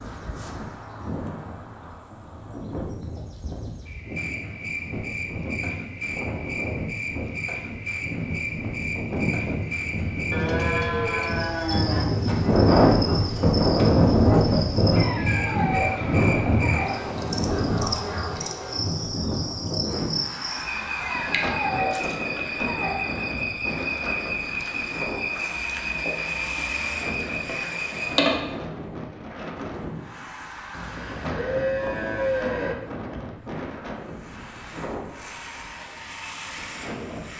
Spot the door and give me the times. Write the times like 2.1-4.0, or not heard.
not heard.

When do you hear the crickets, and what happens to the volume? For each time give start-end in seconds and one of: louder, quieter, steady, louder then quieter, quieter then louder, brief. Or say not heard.
0.0-28.3 louder.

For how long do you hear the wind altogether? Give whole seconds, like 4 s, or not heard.
37 s.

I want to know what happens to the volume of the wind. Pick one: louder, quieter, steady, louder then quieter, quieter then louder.
louder then quieter.